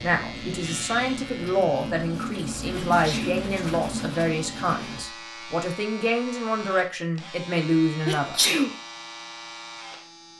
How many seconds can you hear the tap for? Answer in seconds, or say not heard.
5 s.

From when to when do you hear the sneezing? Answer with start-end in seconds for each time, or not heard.
2.9-3.4, 8.1-8.8.